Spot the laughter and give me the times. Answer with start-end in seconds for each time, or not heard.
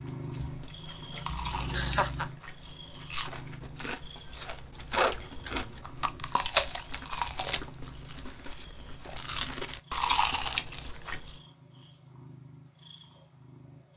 1.2-2.2.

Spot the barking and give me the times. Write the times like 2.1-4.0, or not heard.
4.9-6.2.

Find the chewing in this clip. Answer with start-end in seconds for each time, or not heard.
0.1-11.4.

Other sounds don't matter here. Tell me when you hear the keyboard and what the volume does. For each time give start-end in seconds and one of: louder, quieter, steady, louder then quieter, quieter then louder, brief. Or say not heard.
not heard.